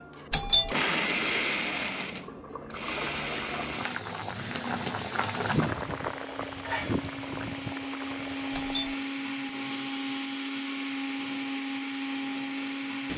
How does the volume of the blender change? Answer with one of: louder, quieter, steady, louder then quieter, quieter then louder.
quieter then louder.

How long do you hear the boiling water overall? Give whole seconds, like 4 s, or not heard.
9 s.